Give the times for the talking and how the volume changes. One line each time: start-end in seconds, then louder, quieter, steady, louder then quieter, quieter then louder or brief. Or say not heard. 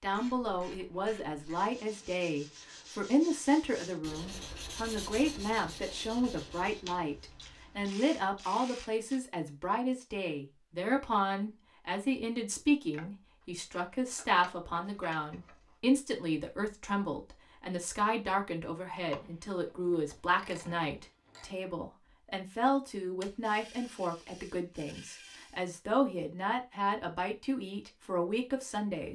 0.0-29.1 steady.